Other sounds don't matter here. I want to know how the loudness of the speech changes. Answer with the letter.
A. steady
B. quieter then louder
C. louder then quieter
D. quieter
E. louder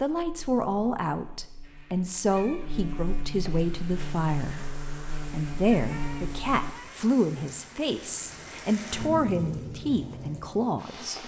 A.